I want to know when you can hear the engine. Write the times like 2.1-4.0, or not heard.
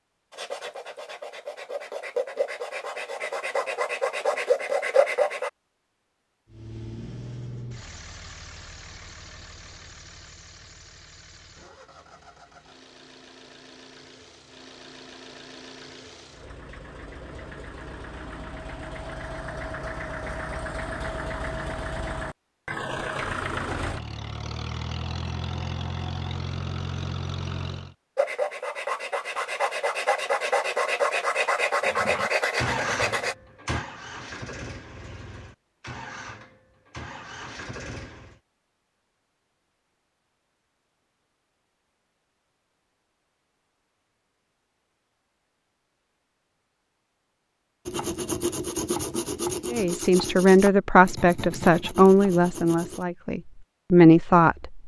6.5-27.9, 31.9-38.4.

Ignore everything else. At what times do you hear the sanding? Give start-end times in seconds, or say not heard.
0.3-5.5, 28.1-33.4, 47.9-53.0.